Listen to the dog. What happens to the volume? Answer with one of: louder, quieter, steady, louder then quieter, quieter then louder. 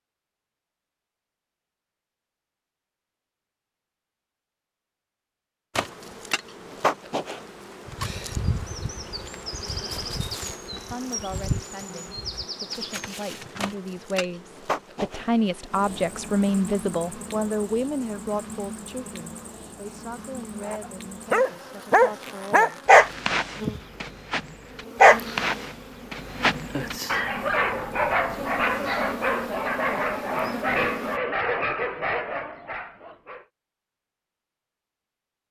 quieter.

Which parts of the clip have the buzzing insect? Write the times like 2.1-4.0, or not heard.
5.8-31.2.